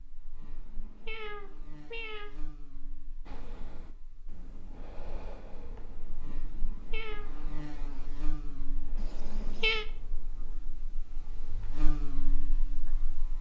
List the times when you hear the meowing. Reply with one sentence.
The meowing can be heard from 0.4 to 2.3 s, from 6.3 to 7.2 s and from 8.9 to 9.8 s.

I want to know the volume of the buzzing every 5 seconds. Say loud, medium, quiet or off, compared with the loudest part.
medium, loud, loud.